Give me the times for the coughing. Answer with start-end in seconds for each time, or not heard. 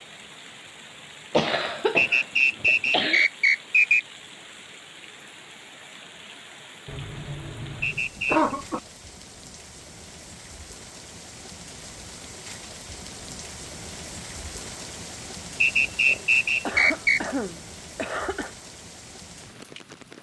1.3-3.2, 6.8-8.8, 15.8-18.5.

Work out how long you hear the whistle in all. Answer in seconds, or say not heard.
4 s.